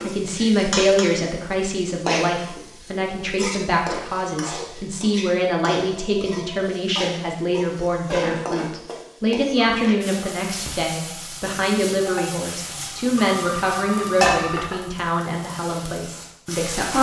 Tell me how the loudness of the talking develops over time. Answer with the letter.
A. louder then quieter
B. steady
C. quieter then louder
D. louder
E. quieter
B.